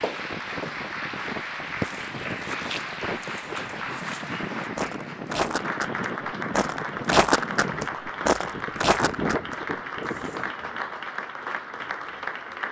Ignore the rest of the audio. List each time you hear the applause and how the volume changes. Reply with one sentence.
You can hear the applause from 0.0 to 12.6 s, at a steady volume.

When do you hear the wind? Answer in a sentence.
You can hear the wind from 0.1 to 10.7 s.